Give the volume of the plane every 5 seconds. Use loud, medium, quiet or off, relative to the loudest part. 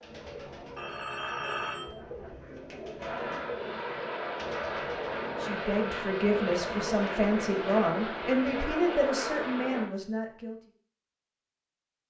loud, loud, off.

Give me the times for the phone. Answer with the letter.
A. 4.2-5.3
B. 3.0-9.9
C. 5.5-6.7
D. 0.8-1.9
D.